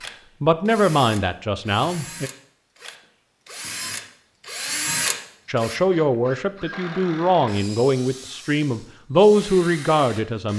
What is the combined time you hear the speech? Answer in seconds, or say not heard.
7 s.